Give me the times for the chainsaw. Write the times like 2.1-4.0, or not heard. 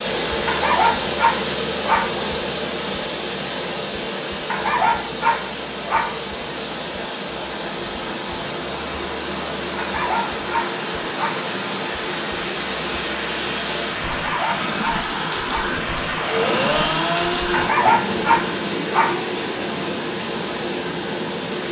16.1-18.6.